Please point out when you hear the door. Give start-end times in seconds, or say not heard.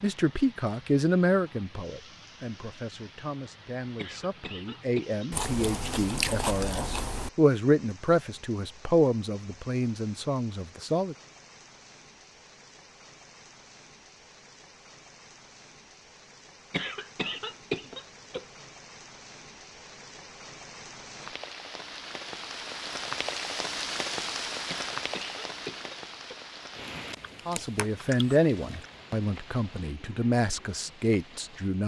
not heard.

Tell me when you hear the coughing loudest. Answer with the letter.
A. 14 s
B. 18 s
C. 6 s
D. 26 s
B.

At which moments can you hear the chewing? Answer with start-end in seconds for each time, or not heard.
5.3-7.3, 27.1-28.9.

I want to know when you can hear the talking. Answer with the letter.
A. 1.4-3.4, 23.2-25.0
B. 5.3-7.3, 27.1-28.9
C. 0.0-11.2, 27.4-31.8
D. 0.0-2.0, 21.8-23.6
C.